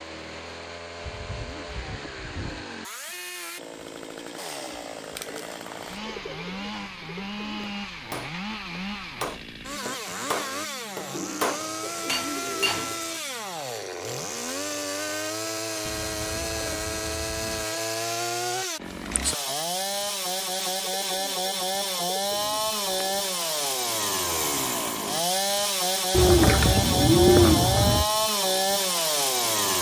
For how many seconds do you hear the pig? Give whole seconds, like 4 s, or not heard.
not heard.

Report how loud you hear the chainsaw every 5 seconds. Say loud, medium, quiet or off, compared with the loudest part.
quiet, medium, medium, medium, loud, loud.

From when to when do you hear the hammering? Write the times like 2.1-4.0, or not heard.
7.5-13.0.